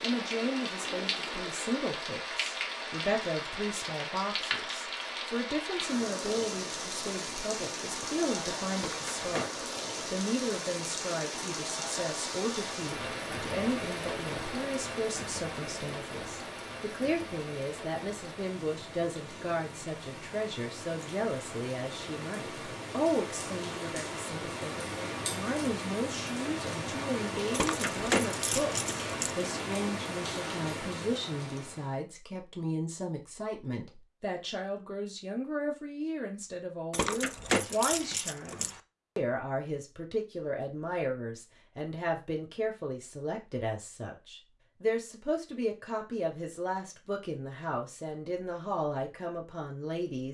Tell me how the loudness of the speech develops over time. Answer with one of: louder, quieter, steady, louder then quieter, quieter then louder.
steady.